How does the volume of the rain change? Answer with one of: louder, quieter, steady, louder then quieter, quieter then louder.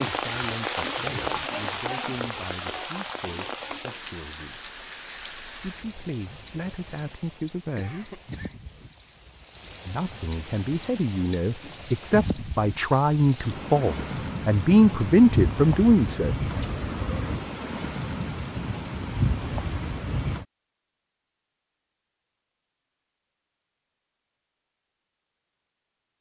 quieter then louder.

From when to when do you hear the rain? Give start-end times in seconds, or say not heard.
0.0-20.4.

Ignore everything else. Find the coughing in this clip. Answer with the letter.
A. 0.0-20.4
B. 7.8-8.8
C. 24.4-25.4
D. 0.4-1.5
B.